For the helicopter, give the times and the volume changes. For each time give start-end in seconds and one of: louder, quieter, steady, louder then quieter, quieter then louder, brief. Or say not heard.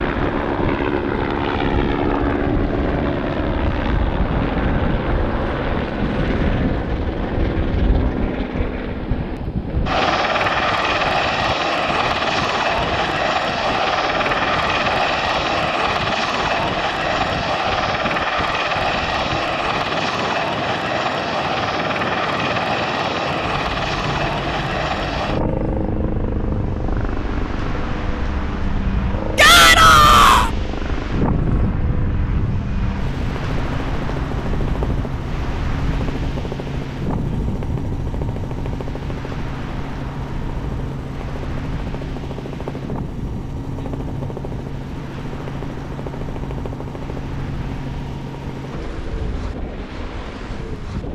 0.0-51.0 quieter.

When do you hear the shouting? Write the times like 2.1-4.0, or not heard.
29.4-30.5.